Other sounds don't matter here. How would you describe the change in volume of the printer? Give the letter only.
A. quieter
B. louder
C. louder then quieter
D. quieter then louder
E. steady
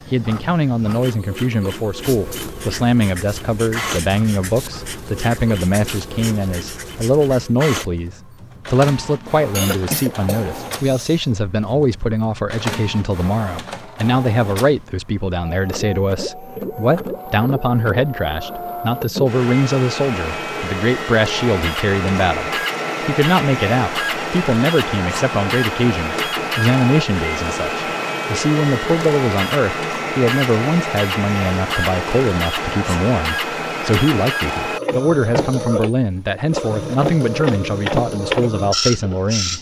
B.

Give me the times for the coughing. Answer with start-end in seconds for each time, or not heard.
9.5-11.2.